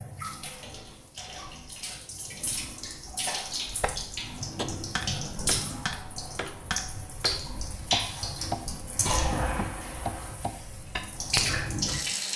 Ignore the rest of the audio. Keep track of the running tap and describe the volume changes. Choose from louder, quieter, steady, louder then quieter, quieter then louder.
louder.